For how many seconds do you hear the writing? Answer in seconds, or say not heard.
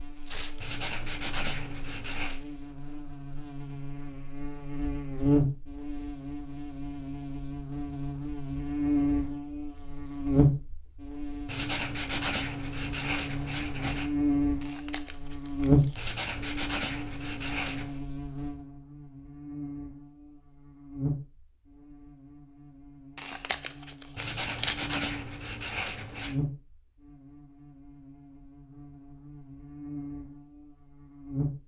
9 s.